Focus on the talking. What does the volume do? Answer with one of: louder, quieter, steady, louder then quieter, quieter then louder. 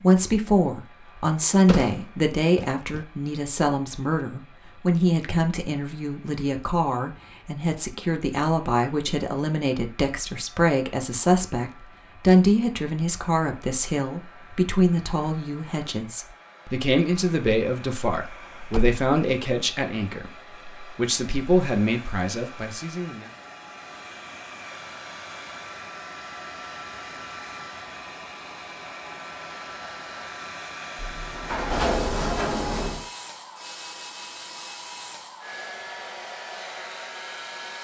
steady.